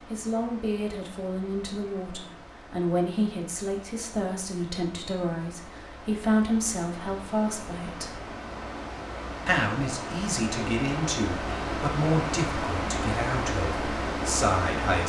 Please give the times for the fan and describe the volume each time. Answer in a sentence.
The fan can be heard from 0.0 to 15.0 s, getting louder.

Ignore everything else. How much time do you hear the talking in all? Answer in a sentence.
You can hear the talking for 14 seconds altogether.